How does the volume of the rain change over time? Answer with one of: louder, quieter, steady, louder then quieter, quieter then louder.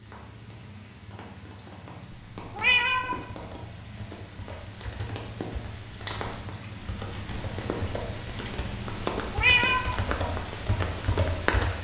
louder.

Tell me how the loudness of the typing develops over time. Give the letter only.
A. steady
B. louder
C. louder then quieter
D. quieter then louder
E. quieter
B.